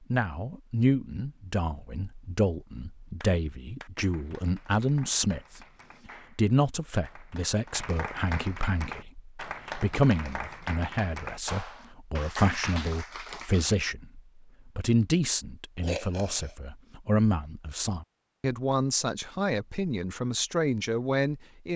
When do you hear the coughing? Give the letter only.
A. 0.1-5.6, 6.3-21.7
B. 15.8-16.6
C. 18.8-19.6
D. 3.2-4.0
B.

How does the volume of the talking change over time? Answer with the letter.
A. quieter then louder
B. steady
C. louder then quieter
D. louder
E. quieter
B.